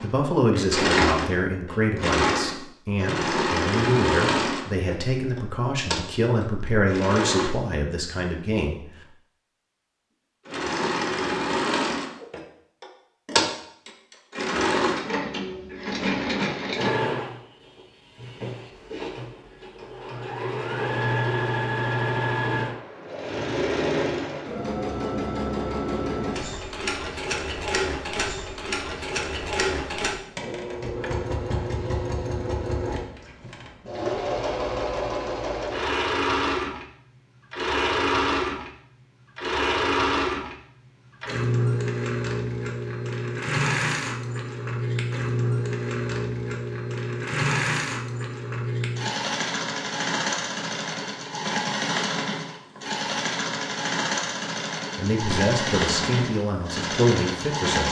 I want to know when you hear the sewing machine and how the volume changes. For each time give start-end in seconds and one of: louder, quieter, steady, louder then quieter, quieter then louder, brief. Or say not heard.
0.0-7.5 quieter
10.4-57.8 steady.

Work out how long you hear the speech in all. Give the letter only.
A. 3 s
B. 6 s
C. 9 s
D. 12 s
D.